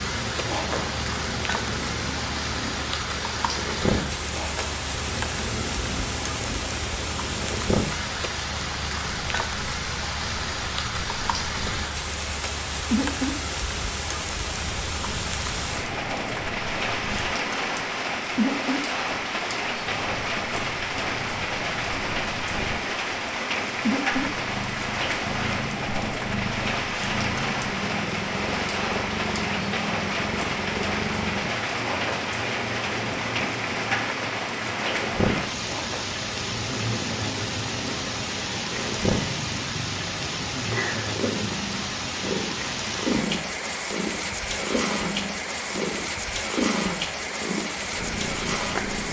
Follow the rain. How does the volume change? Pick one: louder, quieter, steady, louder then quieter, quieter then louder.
steady.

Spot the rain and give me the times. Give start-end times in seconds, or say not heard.
0.0-49.0.